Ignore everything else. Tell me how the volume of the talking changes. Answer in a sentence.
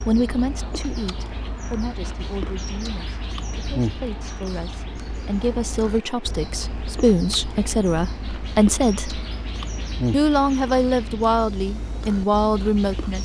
The volume of the talking goes down, then up.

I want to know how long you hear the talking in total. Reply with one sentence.
The talking can be heard for 12 seconds in total.